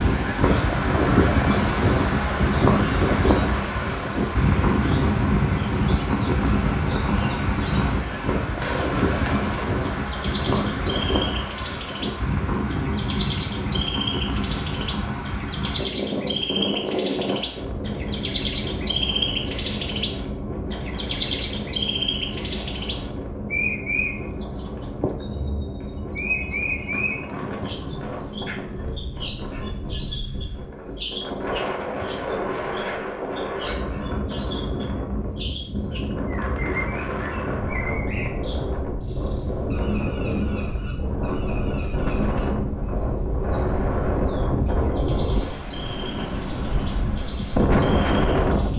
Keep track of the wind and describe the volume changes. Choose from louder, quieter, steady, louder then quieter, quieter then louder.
quieter then louder.